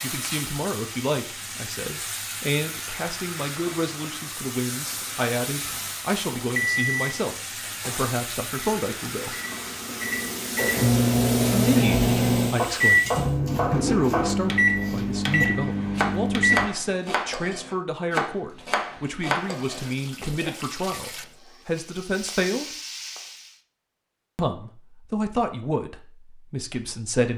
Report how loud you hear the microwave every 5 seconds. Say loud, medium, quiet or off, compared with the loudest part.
off, medium, loud, loud, off, off.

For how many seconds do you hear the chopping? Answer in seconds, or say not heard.
8 s.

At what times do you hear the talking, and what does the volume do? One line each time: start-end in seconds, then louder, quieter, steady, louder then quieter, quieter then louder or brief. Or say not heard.
0.0-9.3 steady
11.5-22.7 steady
24.4-27.3 brief.